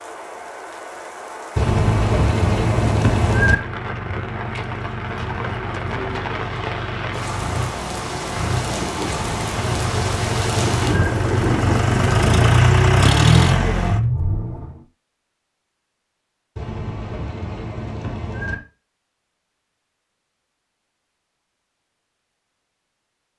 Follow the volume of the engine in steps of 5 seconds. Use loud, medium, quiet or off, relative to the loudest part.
quiet, medium, loud, off, off.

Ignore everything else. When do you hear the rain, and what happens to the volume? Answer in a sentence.
You can hear the rain from 0.0 to 12.6 s, getting louder.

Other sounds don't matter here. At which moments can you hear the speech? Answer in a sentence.
The speech can't be heard in this clip.